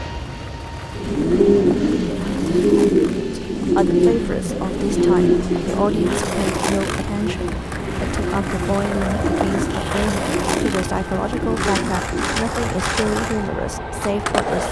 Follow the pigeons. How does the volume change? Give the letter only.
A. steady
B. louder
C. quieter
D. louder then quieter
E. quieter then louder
C.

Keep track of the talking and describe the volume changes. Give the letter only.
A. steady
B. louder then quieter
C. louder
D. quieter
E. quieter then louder
A.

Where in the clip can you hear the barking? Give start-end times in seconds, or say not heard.
not heard.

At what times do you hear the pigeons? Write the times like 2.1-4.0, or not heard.
0.9-12.4.